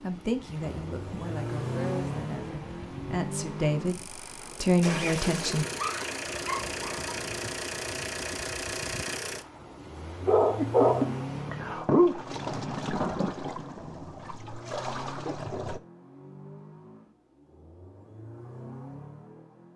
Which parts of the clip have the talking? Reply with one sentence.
You can hear the talking from 0.0 to 5.7 s.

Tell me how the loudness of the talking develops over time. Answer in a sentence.
The loudness of the talking goes up.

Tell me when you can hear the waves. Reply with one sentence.
The waves can be heard from 0.0 to 15.8 s.